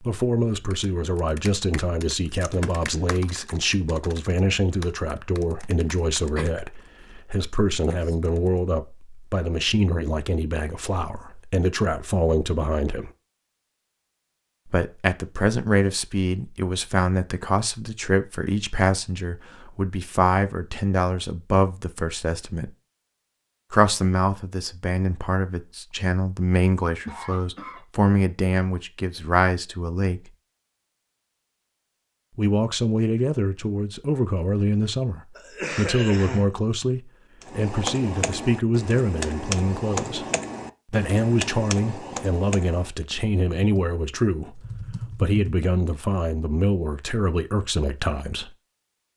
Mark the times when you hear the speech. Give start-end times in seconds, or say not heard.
0.0-13.1, 14.7-22.7, 23.7-30.3, 32.4-40.2, 40.9-48.5.